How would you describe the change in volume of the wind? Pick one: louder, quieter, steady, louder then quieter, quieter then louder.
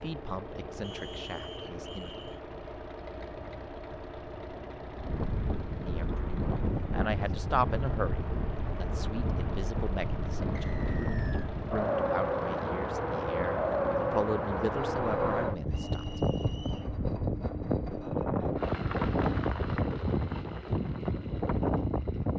louder.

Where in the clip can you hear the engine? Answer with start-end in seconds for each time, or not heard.
0.0-22.3.